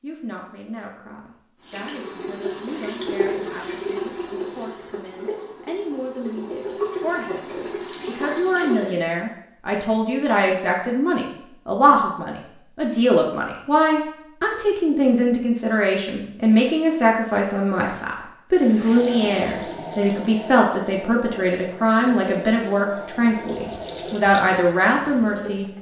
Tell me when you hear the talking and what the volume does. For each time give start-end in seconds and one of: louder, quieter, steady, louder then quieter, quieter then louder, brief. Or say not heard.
0.0-25.6 louder.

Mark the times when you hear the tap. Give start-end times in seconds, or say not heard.
1.6-9.0, 18.6-25.7.